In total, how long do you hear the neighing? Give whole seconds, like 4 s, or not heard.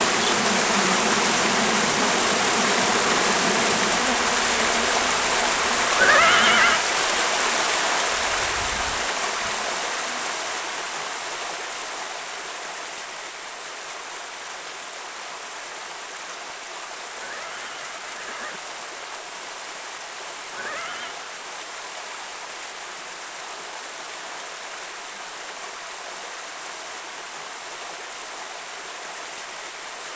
3 s.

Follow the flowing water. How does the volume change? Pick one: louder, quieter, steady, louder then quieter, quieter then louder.
quieter.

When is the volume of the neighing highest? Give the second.
6 s.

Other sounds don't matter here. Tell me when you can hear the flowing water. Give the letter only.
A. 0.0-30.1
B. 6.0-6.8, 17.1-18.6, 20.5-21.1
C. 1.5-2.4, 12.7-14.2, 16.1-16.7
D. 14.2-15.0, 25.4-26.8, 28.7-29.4
A.